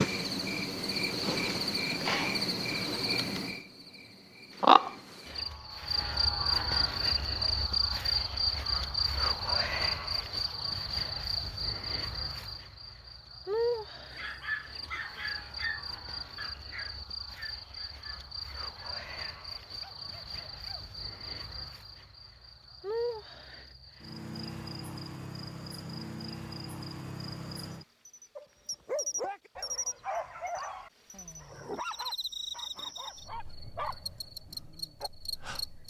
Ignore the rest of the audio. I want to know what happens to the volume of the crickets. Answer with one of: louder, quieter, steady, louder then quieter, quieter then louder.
quieter.